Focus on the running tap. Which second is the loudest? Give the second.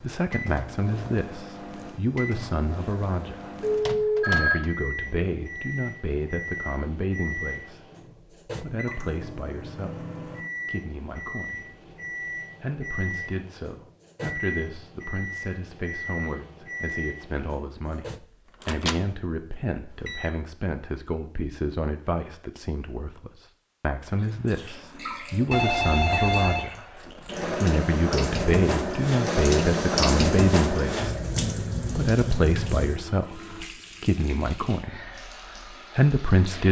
30 s.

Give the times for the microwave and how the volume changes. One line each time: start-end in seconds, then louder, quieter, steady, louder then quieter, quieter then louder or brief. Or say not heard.
0.0-20.4 steady.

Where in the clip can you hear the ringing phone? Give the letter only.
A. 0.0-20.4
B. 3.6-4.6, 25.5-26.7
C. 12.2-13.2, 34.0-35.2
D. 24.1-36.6
B.